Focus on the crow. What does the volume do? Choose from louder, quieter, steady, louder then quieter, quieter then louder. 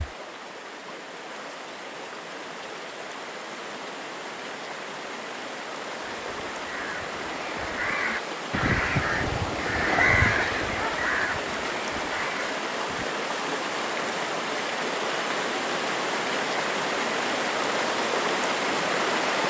louder then quieter.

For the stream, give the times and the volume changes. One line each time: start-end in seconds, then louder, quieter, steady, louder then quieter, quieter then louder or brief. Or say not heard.
0.0-19.4 louder.